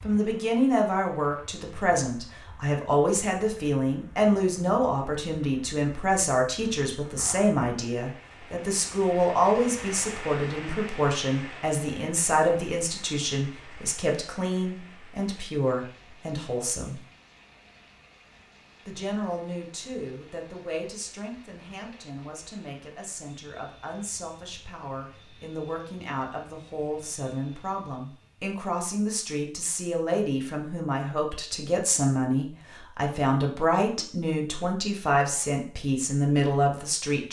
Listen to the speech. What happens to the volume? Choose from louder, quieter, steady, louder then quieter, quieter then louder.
quieter then louder.